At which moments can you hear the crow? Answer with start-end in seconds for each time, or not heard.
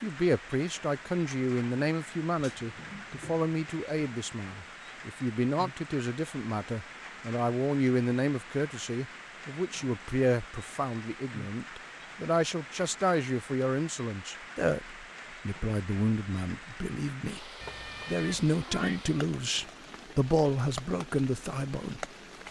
not heard.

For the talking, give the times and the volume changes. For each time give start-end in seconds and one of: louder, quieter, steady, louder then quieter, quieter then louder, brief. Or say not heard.
0.0-22.4 steady.